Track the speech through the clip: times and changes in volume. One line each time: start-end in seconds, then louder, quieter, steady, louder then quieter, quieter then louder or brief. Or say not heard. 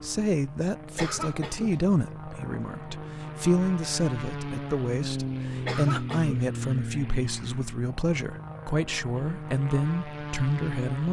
0.0-11.0 steady.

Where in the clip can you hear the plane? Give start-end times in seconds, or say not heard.
0.0-11.0.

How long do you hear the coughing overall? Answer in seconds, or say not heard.
2 s.